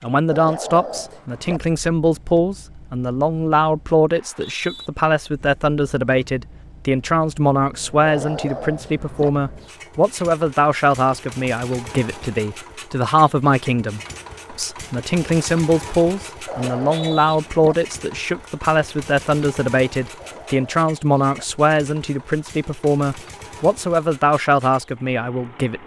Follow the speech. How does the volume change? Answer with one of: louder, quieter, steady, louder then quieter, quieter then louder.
steady.